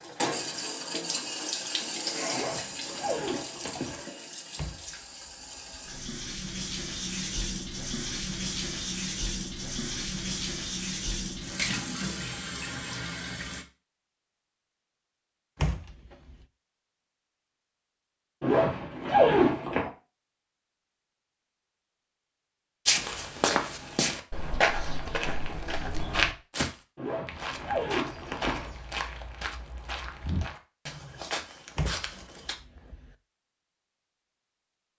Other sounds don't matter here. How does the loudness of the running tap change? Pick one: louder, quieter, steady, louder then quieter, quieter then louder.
quieter then louder.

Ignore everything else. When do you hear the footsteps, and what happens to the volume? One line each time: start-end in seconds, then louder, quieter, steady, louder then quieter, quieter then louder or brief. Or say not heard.
22.9-32.5 quieter.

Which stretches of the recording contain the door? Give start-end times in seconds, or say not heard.
4.5-5.9, 15.6-16.4, 31.8-33.1.